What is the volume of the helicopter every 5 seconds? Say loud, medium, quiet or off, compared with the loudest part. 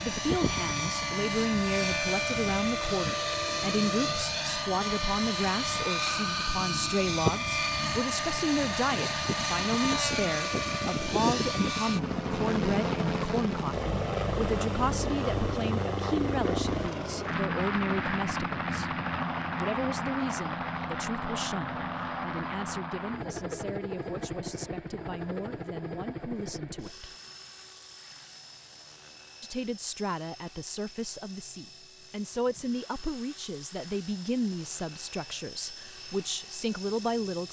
loud, loud, loud, loud, medium, quiet, quiet, quiet.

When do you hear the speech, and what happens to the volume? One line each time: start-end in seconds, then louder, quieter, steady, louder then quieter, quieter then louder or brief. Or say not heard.
0.0-27.1 quieter
29.4-37.4 steady.